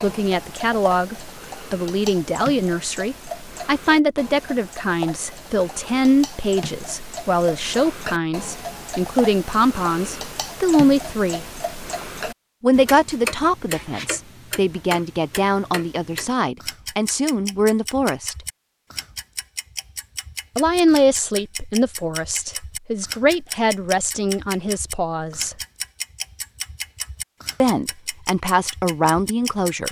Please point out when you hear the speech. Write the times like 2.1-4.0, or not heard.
0.0-11.4, 12.6-18.4, 20.6-25.6, 27.6-29.8.